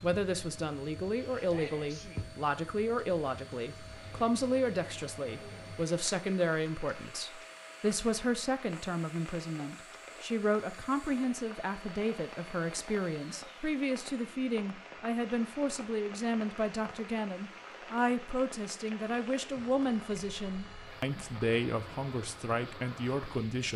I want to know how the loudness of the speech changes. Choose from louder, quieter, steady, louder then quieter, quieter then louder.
steady.